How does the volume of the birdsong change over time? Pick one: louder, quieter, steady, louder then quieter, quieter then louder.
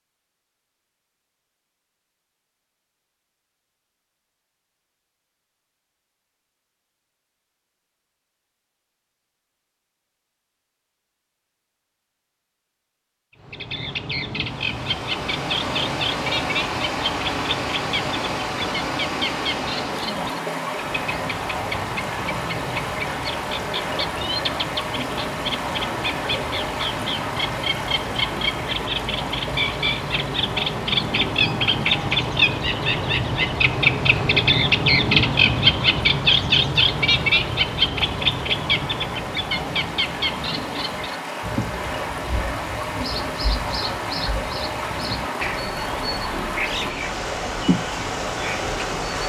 louder then quieter.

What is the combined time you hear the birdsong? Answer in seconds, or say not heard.
36 s.